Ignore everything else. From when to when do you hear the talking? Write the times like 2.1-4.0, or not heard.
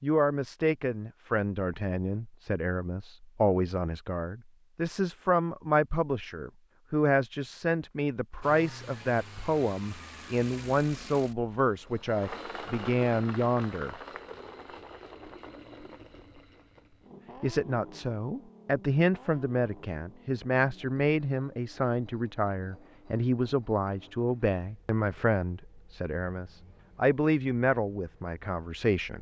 0.0-13.9, 17.4-29.1.